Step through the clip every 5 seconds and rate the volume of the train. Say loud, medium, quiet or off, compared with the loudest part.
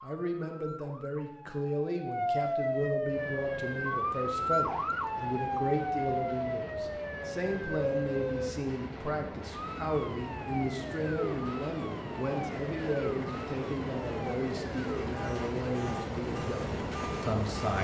medium, medium, loud, loud.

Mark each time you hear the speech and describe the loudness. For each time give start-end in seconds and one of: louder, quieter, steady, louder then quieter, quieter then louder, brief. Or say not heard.
0.0-17.7 steady.